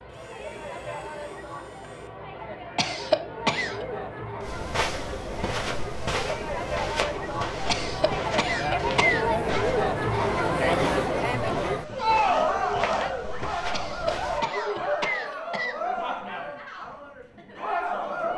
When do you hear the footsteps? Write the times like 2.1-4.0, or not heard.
4.4-14.4.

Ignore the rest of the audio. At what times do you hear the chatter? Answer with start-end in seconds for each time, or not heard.
0.0-18.3.